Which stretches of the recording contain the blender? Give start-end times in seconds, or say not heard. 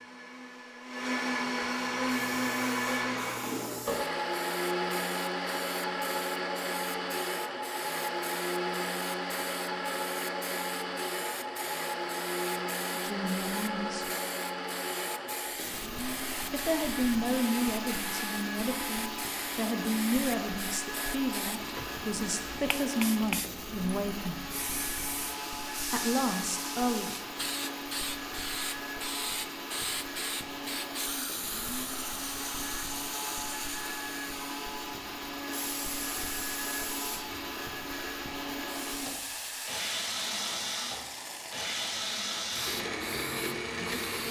0.0-44.2.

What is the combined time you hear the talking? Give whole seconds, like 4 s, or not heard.
10 s.